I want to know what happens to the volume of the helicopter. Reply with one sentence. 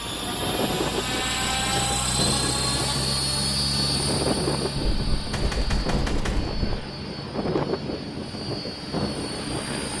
The loudness of the helicopter goes down.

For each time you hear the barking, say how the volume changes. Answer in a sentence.
You can't hear the barking here.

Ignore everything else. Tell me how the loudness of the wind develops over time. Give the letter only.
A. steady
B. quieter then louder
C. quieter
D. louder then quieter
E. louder
A.